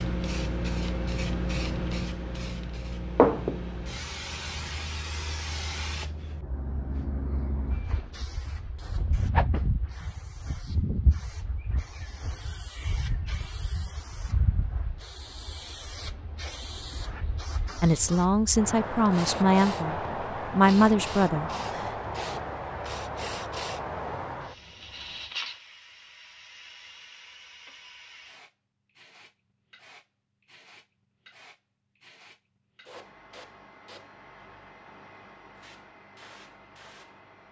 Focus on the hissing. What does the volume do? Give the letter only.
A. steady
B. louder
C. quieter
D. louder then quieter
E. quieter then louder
C.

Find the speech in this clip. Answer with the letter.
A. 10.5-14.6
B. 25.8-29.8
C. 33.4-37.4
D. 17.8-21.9
D.